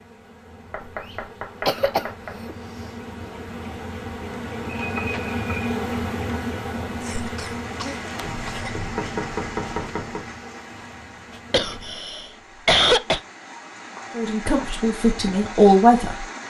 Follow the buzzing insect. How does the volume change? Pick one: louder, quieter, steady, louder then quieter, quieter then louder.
louder then quieter.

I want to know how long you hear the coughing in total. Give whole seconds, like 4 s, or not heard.
4 s.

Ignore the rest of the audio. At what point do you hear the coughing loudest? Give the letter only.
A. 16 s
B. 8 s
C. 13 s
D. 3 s
C.